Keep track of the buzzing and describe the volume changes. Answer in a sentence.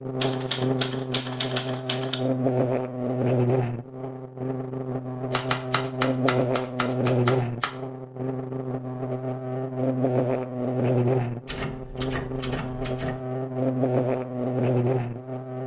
The loudness of the buzzing stays about the same.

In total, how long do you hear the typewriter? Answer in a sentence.
You can hear the typewriter for 6 seconds altogether.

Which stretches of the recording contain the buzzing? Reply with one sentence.
You can hear the buzzing from 0.0 to 15.6 s.